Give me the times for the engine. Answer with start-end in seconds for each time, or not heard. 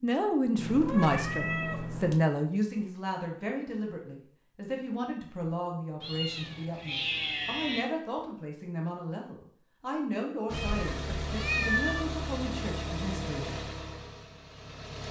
10.4-15.0.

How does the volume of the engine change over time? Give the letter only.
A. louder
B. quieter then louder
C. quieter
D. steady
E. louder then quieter
C.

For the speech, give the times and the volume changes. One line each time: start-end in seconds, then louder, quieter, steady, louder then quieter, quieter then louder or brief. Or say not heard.
0.0-13.6 quieter.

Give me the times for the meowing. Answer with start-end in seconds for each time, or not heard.
0.6-2.2, 6.0-7.8, 10.5-12.1.